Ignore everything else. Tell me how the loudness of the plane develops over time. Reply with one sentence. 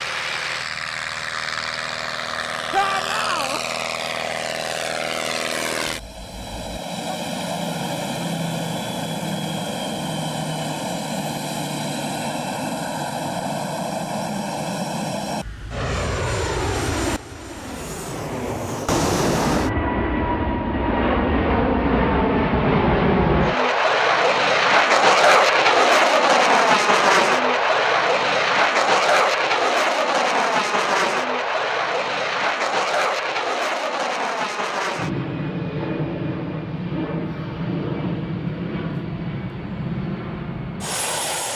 The volume of the plane goes up, then down.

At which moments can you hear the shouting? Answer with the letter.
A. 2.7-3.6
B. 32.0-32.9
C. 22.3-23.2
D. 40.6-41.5
A.